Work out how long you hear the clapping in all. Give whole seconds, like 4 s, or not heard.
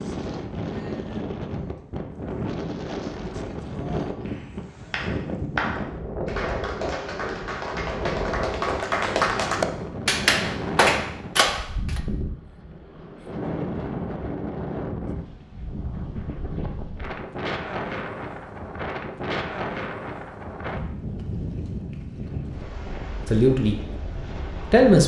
8 s.